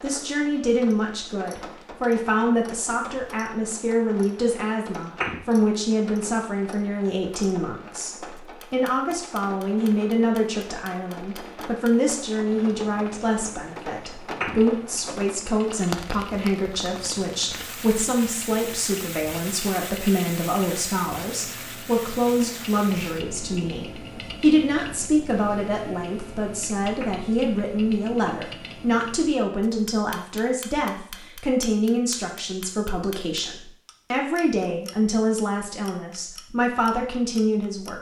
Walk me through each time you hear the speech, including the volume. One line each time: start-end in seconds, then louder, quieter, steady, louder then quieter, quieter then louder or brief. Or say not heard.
0.0-37.9 steady.